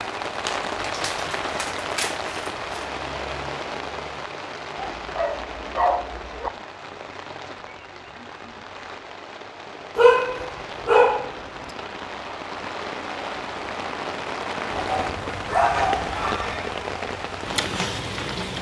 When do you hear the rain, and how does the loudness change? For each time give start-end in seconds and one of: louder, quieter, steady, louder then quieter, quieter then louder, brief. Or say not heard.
0.0-18.5 quieter then louder.